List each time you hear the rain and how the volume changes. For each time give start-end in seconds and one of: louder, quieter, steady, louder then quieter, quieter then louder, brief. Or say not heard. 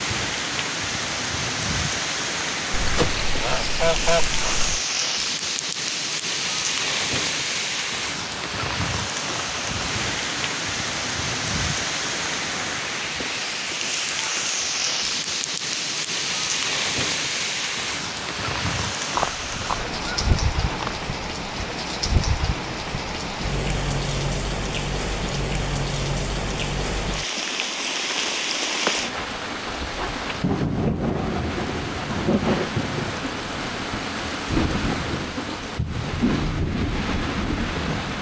0.0-38.1 steady.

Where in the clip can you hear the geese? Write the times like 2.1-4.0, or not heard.
2.7-4.8, 19.1-20.9.